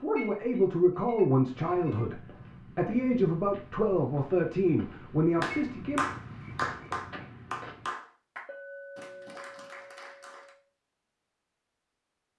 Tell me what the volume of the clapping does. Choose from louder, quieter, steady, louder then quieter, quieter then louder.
quieter.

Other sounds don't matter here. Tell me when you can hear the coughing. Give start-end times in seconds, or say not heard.
not heard.